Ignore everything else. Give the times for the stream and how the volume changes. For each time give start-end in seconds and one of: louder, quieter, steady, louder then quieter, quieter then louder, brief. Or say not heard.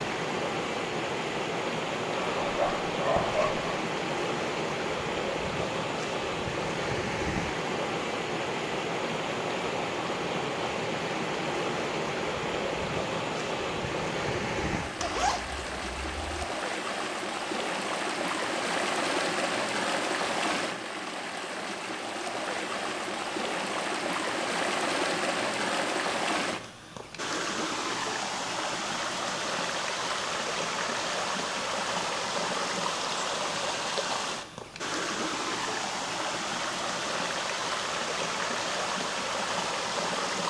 0.0-40.4 steady.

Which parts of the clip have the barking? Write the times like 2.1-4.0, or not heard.
2.1-3.8.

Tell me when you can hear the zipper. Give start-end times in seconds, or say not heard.
14.9-16.4.